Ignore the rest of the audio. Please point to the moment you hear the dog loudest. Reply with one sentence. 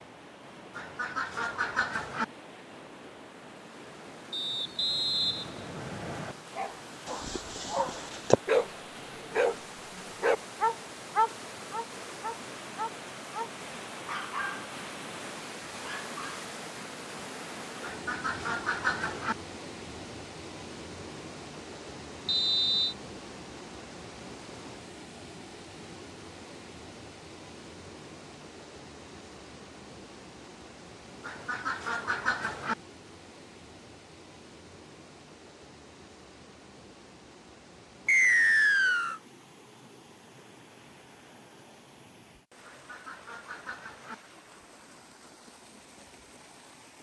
The loudest moment of the dog is at 8 seconds.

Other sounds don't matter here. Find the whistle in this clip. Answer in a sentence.
You can hear the whistle from 4.3 to 6.3 s, from 22.2 to 22.9 s and from 38.0 to 39.2 s.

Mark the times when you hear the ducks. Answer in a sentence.
The ducks can be heard from 0.8 to 2.2 s, from 17.8 to 19.4 s, from 31.2 to 32.8 s and from 42.6 to 44.1 s.